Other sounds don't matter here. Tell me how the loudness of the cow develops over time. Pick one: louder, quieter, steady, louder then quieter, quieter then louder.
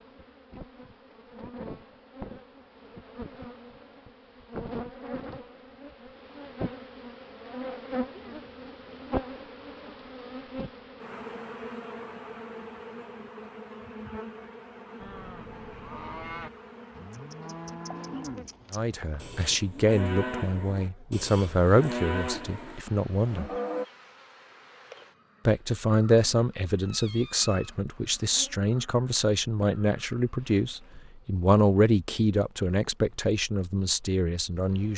louder.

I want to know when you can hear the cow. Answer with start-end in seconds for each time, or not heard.
15.0-23.9.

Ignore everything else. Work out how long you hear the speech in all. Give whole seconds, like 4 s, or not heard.
14 s.